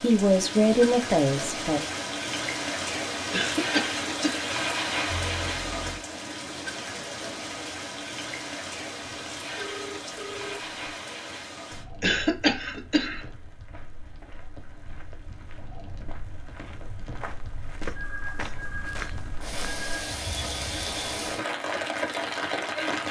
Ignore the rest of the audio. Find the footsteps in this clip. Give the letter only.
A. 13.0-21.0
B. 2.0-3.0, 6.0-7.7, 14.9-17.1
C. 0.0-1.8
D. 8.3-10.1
A.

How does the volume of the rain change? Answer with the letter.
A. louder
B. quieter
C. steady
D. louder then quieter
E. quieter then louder
E.